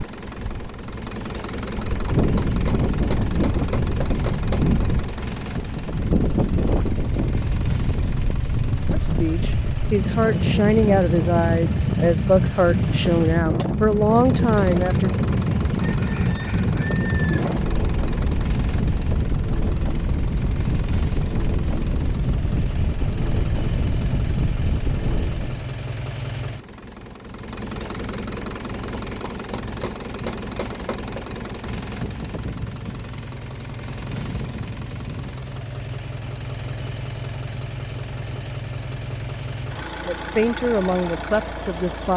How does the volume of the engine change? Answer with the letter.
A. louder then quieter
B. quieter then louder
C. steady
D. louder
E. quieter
C.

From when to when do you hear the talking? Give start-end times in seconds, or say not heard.
8.9-15.2, 40.0-42.1.